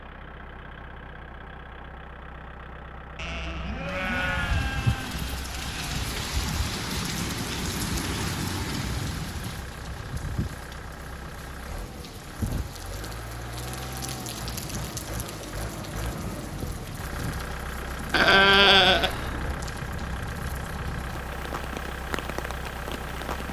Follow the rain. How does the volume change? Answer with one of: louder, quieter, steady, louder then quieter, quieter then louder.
quieter.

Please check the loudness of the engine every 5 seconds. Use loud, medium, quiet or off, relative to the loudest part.
medium, medium, loud, loud, loud.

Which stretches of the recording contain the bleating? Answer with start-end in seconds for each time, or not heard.
3.1-6.0, 18.1-19.6.